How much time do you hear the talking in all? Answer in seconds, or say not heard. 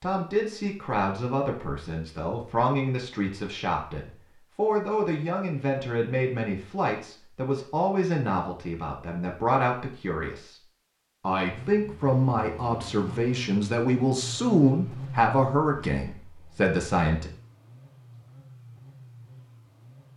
17 s.